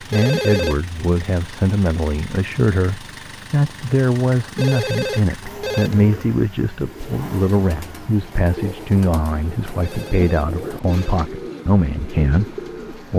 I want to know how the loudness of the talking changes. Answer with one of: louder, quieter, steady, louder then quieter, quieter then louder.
steady.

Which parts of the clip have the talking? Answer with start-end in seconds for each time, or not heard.
0.0-13.1.